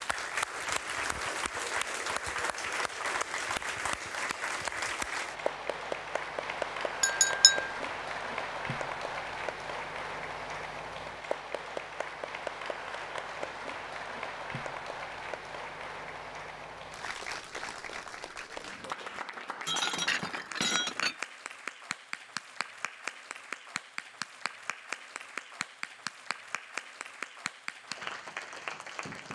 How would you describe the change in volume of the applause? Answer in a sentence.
The loudness of the applause goes down.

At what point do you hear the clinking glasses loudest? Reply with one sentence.
The loudest moment of the clinking glasses is at 7 seconds.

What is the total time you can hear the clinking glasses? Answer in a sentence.
You can hear the clinking glasses for 2 seconds altogether.